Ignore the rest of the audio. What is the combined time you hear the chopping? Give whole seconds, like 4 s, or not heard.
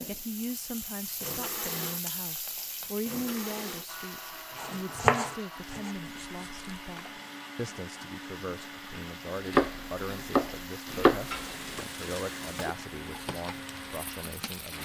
5 s.